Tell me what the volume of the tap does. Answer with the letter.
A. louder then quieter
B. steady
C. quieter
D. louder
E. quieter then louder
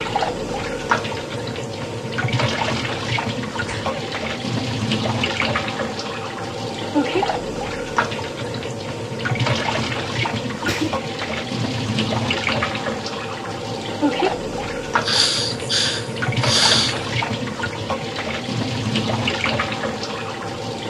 B.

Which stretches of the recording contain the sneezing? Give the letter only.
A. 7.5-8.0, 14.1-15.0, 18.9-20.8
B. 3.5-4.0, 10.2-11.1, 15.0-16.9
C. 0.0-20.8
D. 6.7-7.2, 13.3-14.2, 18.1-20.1
B.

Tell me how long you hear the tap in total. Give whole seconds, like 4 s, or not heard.
21 s.